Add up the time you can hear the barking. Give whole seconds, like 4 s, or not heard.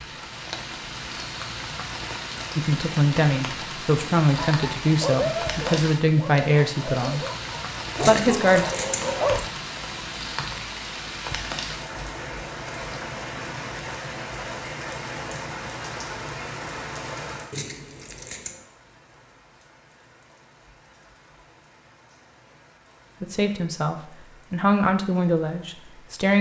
5 s.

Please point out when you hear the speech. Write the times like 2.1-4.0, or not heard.
2.5-7.2, 8.0-8.7, 23.2-26.3.